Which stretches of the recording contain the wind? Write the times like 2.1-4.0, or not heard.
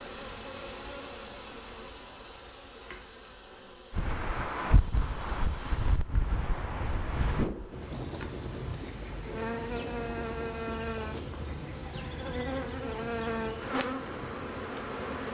3.9-15.2.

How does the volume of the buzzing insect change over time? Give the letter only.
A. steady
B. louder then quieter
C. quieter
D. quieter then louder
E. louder
D.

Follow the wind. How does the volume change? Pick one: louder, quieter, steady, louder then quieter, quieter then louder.
quieter.